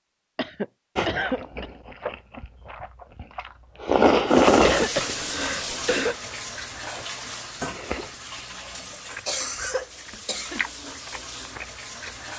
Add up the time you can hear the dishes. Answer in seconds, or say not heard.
not heard.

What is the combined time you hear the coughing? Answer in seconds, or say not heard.
5 s.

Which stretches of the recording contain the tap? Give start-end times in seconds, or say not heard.
4.2-12.3.